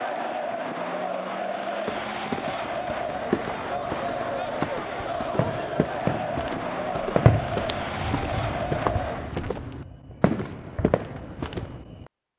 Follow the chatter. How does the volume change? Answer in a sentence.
The volume of the chatter stays about the same.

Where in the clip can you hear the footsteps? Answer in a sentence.
The footsteps can be heard from 1.9 to 11.8 s.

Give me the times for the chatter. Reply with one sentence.
The chatter can be heard from 0.0 to 9.4 s.